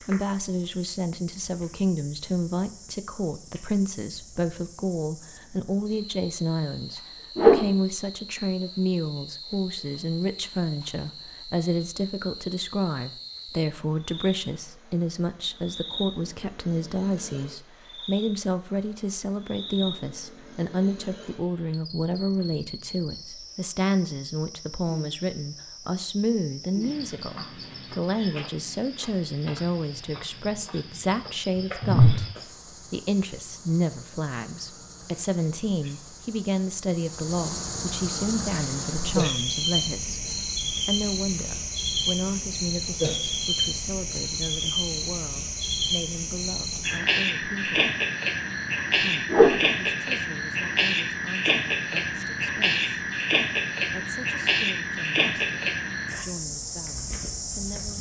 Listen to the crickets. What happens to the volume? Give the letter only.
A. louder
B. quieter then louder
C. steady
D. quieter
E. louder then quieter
A.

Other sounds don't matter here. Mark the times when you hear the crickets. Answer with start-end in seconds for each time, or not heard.
0.0-57.9.